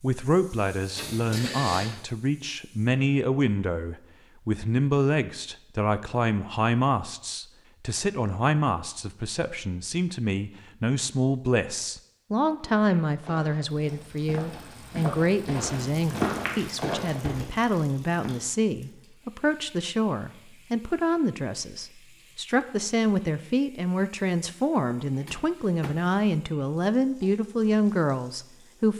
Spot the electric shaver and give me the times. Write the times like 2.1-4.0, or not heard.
not heard.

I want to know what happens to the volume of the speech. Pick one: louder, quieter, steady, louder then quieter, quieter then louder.
steady.